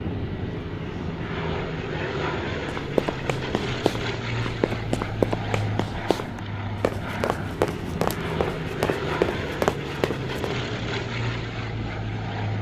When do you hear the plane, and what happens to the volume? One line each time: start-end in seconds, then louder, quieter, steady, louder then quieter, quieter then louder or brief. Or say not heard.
0.0-12.5 steady.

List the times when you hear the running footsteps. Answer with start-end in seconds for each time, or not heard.
2.6-10.3.